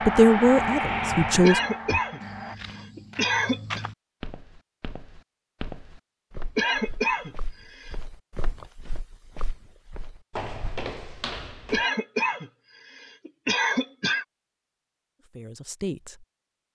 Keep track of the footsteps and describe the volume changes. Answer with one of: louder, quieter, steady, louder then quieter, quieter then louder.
quieter then louder.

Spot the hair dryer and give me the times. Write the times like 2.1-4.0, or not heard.
0.0-2.5.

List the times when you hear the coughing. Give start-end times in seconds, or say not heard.
1.4-3.9, 6.5-8.0, 11.7-14.2.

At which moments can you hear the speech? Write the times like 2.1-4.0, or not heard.
0.1-1.6, 15.2-16.2.